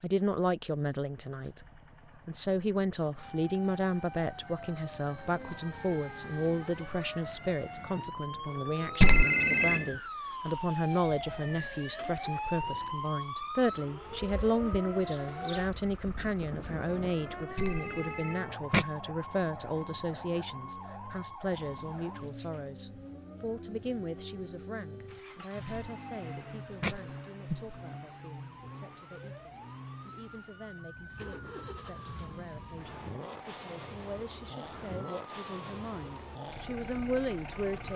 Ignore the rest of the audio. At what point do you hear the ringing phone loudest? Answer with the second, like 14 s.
9 s.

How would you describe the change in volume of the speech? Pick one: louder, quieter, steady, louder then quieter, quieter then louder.
quieter.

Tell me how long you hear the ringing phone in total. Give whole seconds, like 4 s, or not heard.
4 s.